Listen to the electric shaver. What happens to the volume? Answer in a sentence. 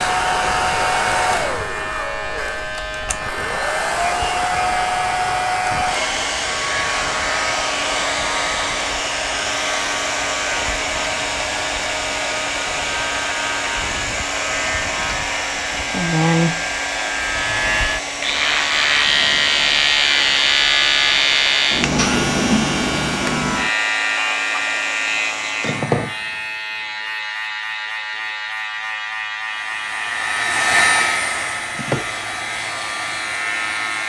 The volume of the electric shaver goes up, then down.